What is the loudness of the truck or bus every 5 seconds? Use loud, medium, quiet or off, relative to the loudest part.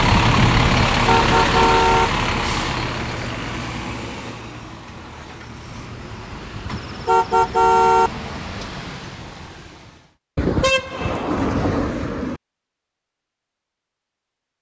loud, quiet, off.